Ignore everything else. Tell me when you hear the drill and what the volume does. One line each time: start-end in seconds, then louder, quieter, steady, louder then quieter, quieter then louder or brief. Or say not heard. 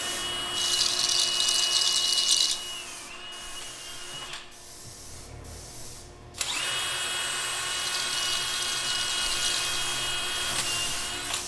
0.0-11.4 quieter then louder.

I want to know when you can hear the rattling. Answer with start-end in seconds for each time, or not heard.
0.6-2.6, 7.8-9.7.